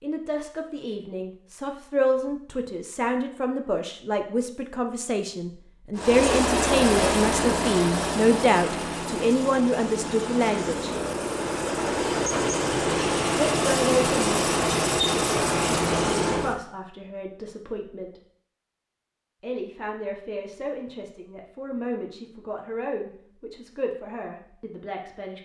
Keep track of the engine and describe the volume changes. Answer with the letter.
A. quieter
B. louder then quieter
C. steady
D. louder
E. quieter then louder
E.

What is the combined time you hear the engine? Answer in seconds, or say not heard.
11 s.